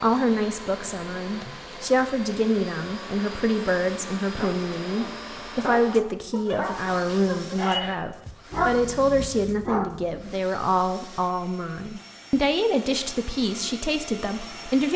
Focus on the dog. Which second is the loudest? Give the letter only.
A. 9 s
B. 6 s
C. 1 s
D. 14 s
A.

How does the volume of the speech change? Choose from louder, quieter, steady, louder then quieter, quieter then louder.
steady.